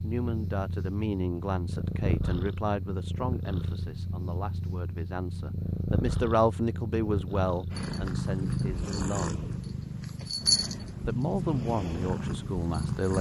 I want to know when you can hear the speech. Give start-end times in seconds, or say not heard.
0.0-9.4, 11.1-13.1.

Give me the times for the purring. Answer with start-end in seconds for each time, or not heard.
0.0-13.1.